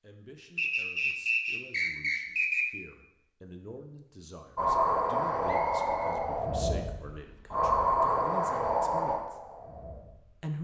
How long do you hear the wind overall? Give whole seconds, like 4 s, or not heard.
6 s.